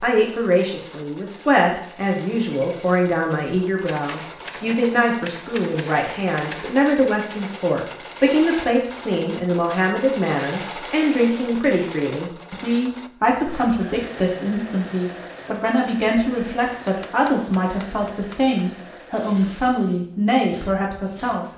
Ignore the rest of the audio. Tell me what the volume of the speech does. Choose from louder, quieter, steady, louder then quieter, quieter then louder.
steady.